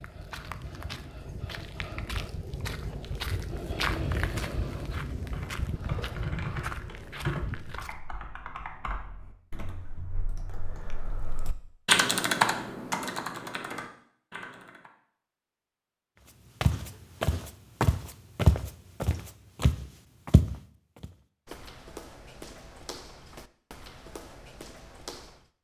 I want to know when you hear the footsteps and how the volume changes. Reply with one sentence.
The footsteps can be heard from 0.0 to 8.0 s, getting louder then quieter; and from 16.6 to 25.5 s, getting quieter.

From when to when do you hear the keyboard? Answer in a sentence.
You can hear the keyboard from 5.2 to 14.9 s.